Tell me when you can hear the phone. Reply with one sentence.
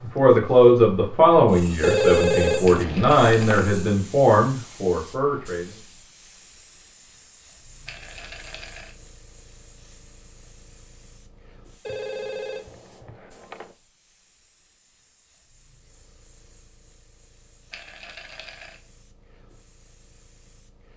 The phone can be heard from 1.8 to 3.6 s and from 11.8 to 13.8 s.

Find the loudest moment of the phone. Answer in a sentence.
The loudest moment of the phone is at 2 seconds.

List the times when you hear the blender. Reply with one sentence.
You can't hear the blender here.